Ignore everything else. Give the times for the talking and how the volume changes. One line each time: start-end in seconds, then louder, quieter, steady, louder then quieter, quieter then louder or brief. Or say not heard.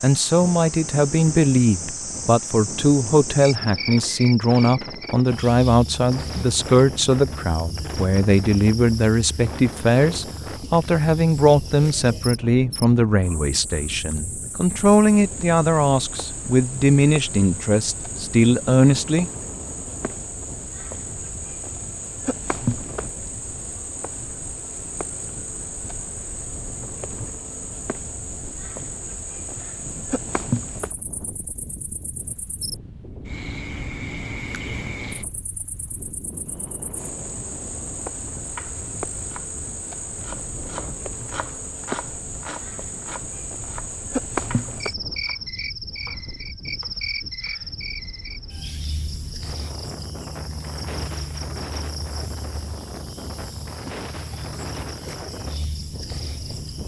0.0-19.3 steady.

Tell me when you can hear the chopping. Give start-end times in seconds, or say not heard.
38.4-47.7.